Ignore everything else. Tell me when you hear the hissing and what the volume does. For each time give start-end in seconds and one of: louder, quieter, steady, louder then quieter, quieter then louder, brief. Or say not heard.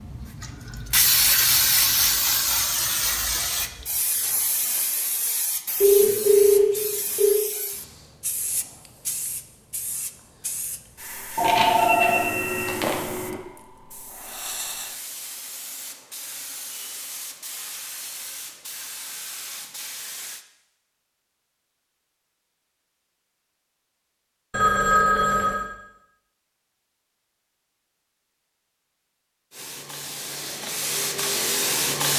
0.0-20.4 quieter
29.5-32.1 brief.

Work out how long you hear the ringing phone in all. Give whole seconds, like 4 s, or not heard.
5 s.